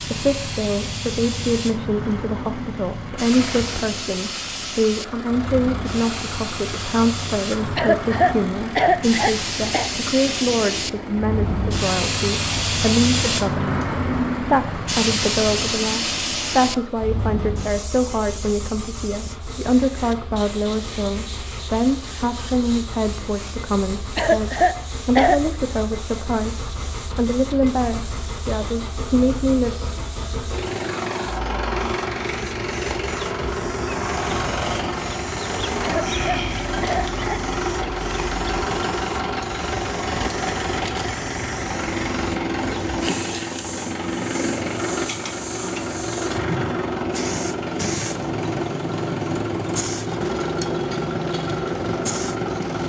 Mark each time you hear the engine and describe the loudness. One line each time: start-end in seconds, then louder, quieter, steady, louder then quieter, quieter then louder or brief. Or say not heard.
0.0-52.8 louder.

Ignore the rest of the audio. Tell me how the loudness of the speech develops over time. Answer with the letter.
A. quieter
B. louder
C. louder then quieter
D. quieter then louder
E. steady
E.